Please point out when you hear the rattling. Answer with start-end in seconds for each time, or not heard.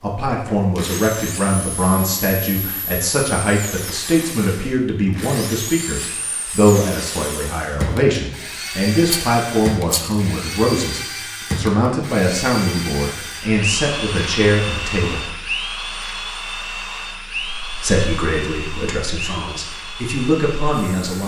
9.1-10.2.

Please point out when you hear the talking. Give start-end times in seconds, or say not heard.
0.0-15.2, 17.6-21.2.